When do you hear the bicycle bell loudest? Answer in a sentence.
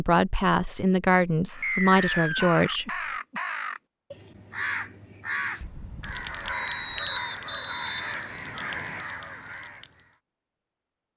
The loudest moment of the bicycle bell is at 7 seconds.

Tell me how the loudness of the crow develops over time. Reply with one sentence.
The volume of the crow stays about the same.